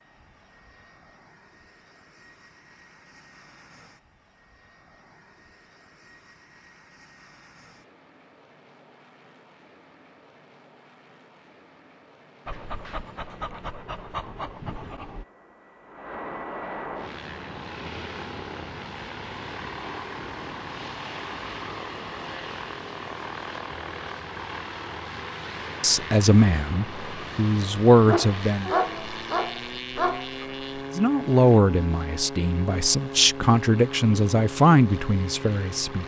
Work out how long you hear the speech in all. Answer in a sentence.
The speech can be heard for 8 seconds in total.